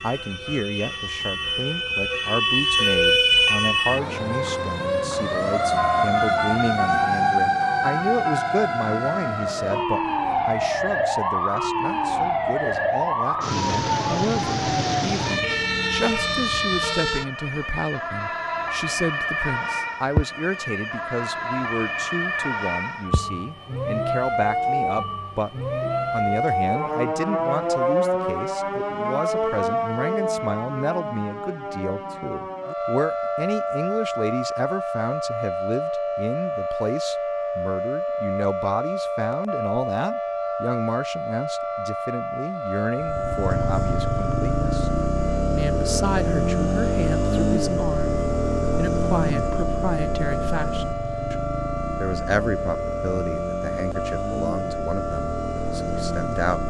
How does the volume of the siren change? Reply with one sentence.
The volume of the siren goes down.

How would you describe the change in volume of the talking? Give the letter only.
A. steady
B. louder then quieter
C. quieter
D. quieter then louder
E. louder
A.